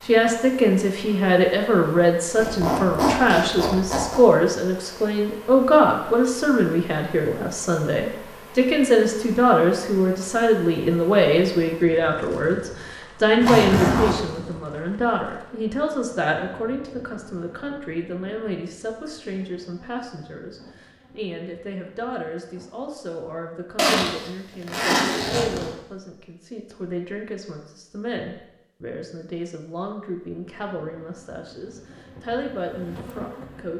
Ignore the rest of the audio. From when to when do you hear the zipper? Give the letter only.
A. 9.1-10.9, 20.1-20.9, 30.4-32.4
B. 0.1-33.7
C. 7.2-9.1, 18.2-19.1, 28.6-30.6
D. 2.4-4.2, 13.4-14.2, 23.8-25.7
D.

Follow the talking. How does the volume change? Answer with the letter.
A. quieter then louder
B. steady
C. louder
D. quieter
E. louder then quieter
D.